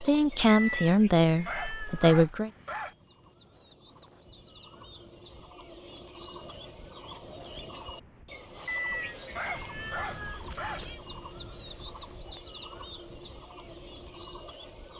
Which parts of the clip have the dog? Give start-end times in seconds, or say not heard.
1.4-3.0, 9.3-10.8.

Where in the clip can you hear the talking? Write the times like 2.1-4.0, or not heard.
0.0-2.5.